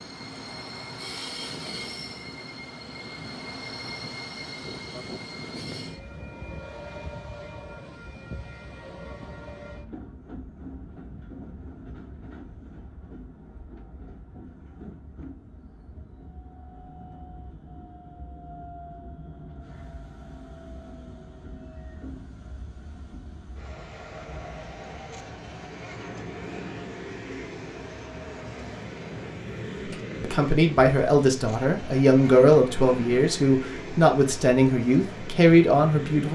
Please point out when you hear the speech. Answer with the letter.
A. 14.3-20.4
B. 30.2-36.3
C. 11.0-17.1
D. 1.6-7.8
B.